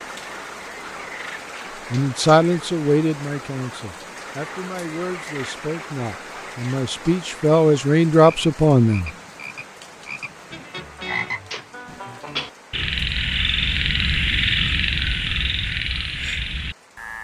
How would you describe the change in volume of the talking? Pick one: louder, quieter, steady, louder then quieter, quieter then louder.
quieter then louder.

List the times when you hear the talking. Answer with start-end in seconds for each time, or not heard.
1.9-9.1.